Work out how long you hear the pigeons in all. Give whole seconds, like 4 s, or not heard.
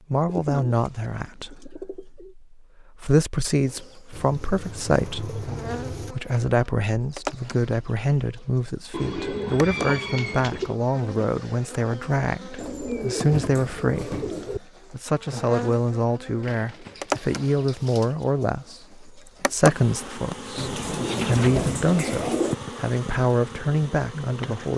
12 s.